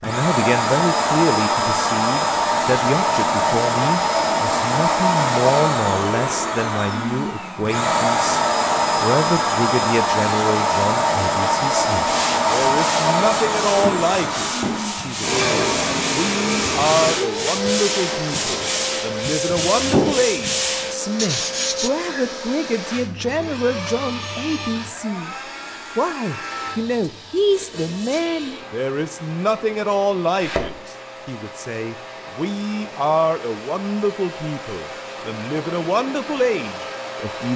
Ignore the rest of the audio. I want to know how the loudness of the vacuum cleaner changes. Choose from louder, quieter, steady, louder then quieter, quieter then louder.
quieter.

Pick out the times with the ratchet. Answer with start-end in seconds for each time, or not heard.
not heard.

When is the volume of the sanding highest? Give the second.
20 s.